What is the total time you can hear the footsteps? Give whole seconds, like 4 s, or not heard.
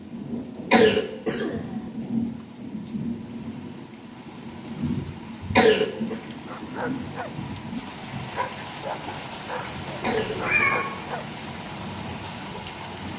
not heard.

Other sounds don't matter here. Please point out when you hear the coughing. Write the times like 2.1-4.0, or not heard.
0.7-1.9, 5.5-6.2, 10.0-11.1.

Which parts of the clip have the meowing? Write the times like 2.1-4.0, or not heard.
10.0-10.8.